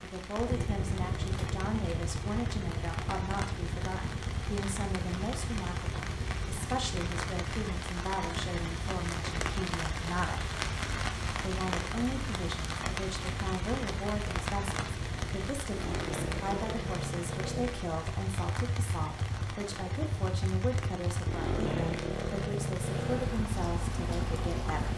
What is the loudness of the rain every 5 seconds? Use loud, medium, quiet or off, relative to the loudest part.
medium, loud, loud, medium, medium.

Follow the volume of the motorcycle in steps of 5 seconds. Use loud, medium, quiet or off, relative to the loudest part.
loud, medium, medium, loud, loud.